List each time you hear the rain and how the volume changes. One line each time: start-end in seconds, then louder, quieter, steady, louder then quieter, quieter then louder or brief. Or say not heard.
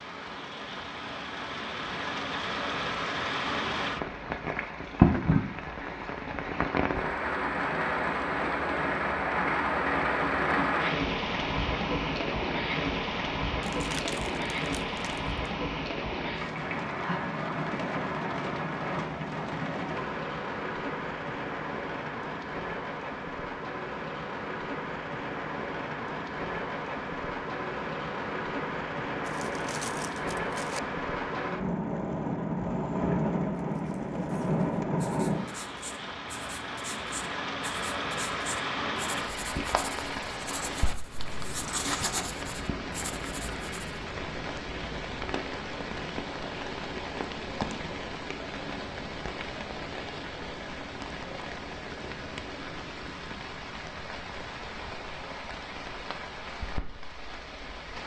0.0-58.0 quieter.